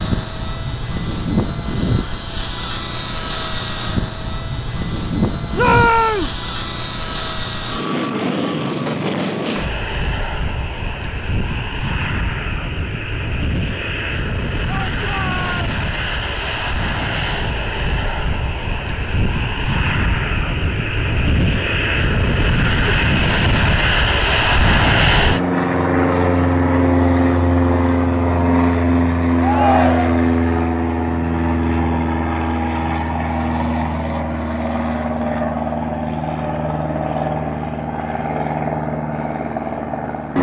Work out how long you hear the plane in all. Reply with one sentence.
You can hear the plane for 40 seconds altogether.